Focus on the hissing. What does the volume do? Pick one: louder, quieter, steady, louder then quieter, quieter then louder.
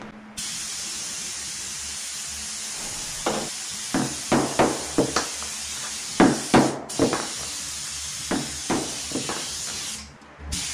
steady.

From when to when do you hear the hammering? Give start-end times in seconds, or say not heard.
2.6-5.5, 6.2-7.5, 8.3-10.1.